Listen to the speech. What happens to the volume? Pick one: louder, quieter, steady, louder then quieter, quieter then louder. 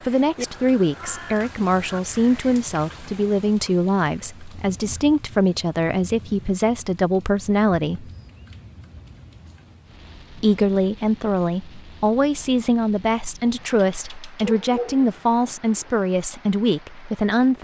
steady.